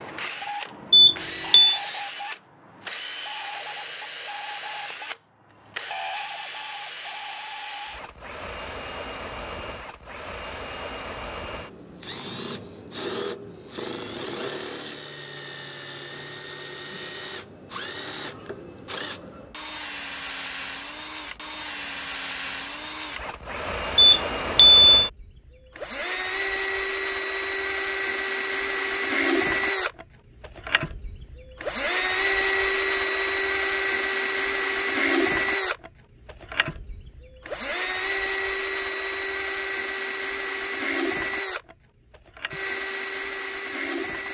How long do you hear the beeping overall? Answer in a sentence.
The beeping can be heard for 2 seconds in total.